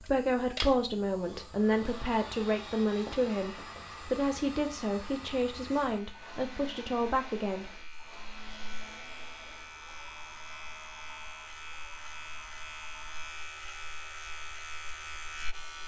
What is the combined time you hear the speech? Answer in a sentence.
You can hear the speech for 8 seconds altogether.